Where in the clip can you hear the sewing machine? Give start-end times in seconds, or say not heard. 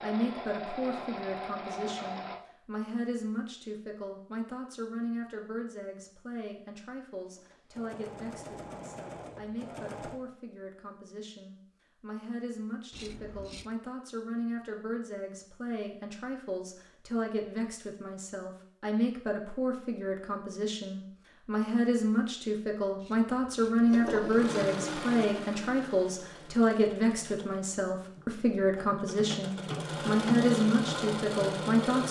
0.0-2.4, 7.2-10.2, 23.9-32.0.